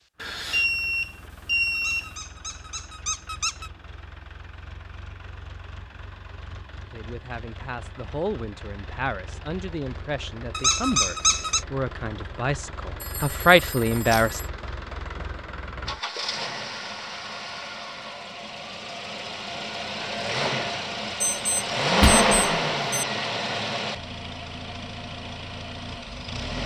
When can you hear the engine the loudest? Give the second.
22 s.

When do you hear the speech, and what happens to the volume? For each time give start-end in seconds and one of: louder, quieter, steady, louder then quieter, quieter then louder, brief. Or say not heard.
6.8-14.4 louder.